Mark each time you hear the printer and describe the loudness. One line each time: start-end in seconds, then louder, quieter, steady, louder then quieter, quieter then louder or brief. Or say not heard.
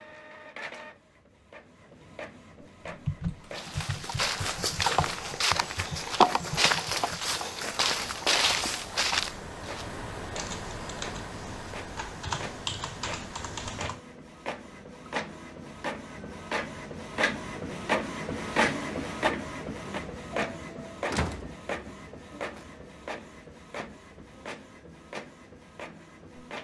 0.0-26.6 louder then quieter.